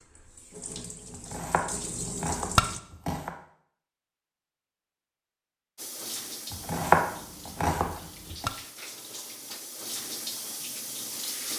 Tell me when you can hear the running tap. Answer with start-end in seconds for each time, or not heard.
0.0-2.8, 5.8-11.5.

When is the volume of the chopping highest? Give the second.
7 s.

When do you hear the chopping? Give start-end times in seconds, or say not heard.
1.1-3.4, 6.5-8.5.